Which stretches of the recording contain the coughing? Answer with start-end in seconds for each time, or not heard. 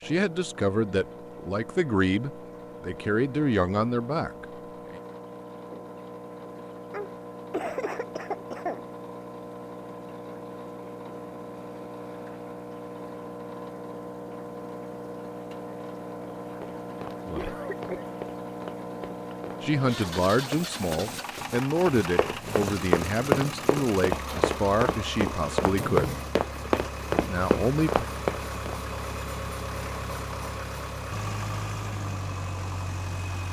6.9-8.8, 17.4-18.1.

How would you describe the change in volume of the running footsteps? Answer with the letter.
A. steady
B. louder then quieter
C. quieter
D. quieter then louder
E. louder
E.